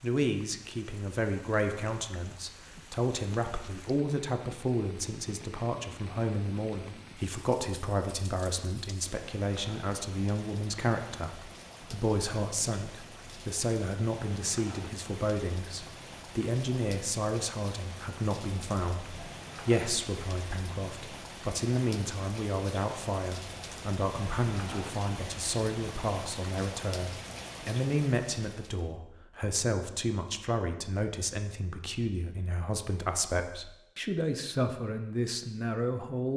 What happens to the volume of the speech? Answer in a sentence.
The loudness of the speech stays about the same.